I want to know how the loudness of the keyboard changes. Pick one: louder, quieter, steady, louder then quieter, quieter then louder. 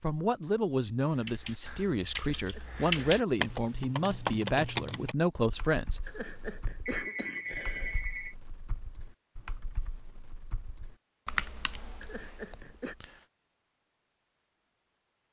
quieter then louder.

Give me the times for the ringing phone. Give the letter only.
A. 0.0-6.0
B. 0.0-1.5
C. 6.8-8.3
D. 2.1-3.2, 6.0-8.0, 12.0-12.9
C.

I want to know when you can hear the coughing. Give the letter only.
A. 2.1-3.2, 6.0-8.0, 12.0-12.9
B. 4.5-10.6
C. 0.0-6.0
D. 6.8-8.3
A.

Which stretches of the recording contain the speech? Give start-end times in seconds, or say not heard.
0.0-6.0.